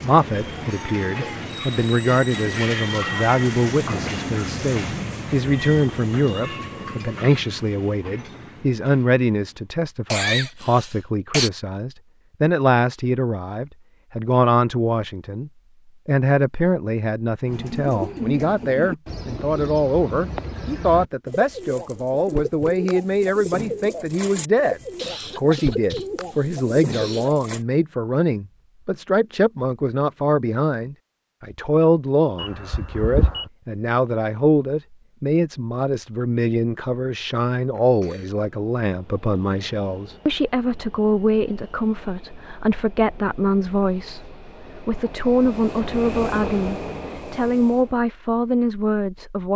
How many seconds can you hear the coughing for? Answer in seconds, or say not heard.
4 s.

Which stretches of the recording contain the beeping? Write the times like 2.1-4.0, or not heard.
32.4-33.5.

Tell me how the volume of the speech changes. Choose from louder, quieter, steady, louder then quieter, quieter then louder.
steady.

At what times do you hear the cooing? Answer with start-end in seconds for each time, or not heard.
17.4-27.6.